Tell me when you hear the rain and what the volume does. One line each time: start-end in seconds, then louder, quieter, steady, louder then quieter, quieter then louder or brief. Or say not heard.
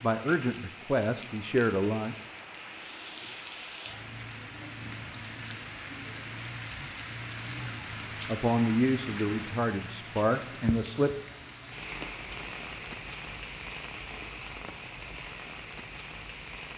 0.0-16.7 steady.